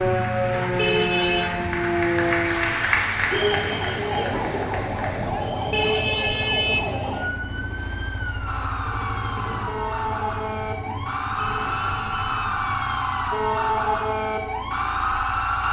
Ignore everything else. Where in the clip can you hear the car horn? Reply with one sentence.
The car horn can be heard from 0.8 to 1.5 s, from 5.7 to 7.0 s and from 11.3 to 12.6 s.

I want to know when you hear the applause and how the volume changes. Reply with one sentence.
The applause can be heard from 0.0 to 5.3 s, getting louder then quieter.